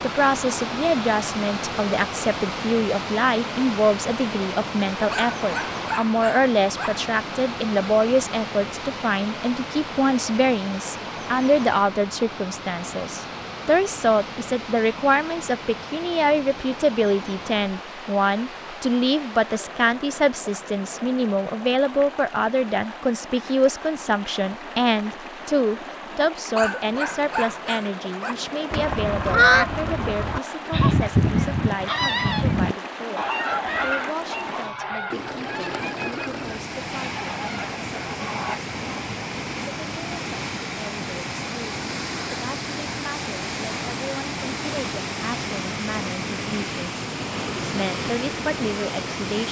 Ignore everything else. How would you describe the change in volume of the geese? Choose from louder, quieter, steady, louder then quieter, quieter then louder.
quieter.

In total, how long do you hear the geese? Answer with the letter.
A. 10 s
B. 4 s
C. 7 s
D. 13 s
A.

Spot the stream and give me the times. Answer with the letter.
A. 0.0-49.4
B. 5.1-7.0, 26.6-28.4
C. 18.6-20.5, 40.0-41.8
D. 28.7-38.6
A.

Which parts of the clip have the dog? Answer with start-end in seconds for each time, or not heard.
5.1-7.0, 26.6-28.4.